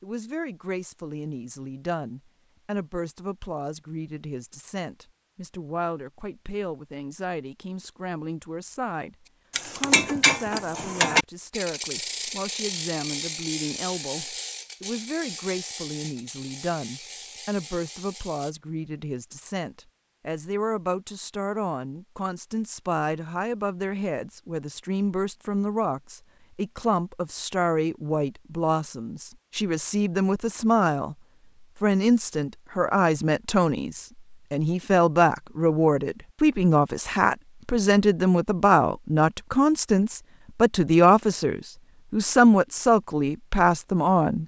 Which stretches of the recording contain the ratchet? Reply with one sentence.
You can hear the ratchet from 9.5 to 18.6 s.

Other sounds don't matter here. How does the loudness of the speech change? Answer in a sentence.
The volume of the speech goes up.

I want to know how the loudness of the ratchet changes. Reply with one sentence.
The loudness of the ratchet goes down.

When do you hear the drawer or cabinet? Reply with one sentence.
You can't hear the drawer or cabinet here.